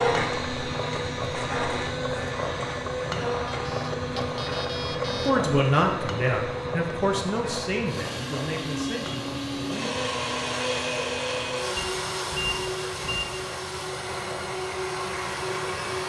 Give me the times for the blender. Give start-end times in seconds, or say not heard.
0.0-16.0.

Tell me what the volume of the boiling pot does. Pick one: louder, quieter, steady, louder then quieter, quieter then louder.
quieter.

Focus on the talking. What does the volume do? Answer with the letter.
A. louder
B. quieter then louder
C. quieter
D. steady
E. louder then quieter
C.